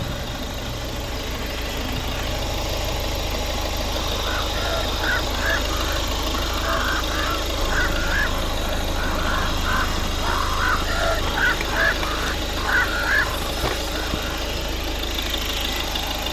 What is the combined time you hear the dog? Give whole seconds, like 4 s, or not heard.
not heard.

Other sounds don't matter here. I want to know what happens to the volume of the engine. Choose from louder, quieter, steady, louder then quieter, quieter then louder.
steady.